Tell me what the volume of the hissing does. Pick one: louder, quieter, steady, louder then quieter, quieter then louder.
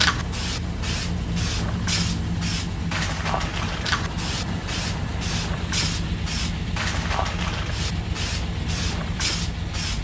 steady.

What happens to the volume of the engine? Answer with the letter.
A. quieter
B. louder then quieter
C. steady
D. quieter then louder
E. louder
C.